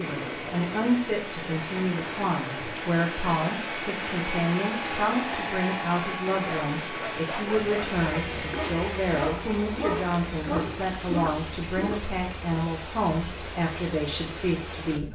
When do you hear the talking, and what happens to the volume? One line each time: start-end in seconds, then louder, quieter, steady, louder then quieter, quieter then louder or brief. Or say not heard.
0.0-15.1 steady.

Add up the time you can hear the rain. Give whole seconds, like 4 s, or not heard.
15 s.